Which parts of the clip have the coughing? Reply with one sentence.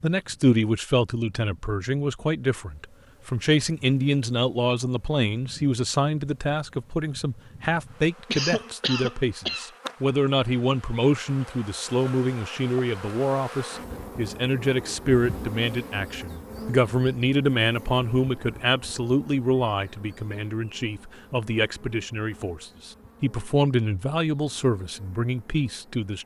The coughing can be heard from 8.2 to 9.7 s.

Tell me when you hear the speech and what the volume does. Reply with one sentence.
The speech can be heard from 0.0 to 26.2 s, at a steady volume.